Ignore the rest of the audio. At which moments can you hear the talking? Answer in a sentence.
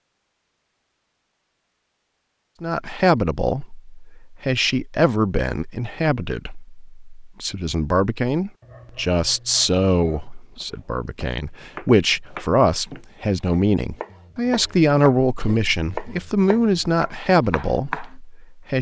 You can hear the talking from 2.6 to 18.7 s.